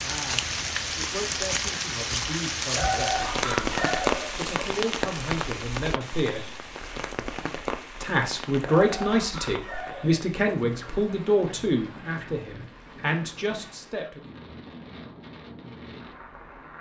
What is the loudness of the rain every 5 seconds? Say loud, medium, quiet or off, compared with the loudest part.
loud, medium, quiet, quiet.